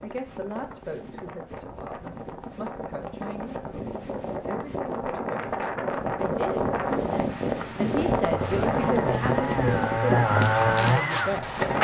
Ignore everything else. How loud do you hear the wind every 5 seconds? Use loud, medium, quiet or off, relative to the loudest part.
medium, loud, loud.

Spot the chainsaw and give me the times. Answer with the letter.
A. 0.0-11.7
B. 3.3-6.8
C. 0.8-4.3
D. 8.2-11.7
D.